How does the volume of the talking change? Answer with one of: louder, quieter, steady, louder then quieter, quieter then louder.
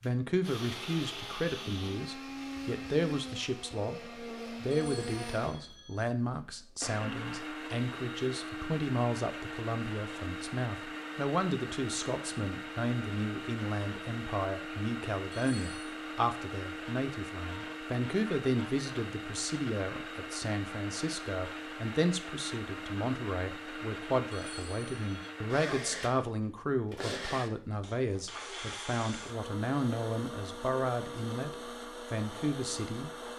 steady.